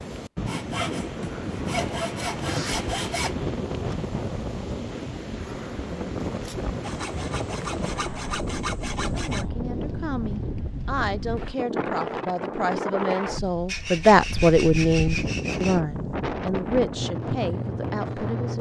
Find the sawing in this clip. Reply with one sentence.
The sawing can be heard from 0.5 to 3.4 s, from 6.8 to 9.4 s and from 13.7 to 15.8 s.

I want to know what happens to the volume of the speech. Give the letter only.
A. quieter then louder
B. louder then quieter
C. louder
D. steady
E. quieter
B.